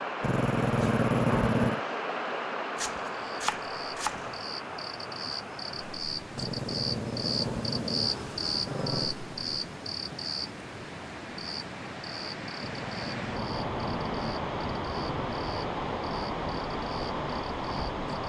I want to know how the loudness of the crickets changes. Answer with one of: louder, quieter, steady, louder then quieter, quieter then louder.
louder then quieter.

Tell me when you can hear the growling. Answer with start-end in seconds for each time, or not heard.
0.2-1.8, 6.3-9.2, 12.6-15.3.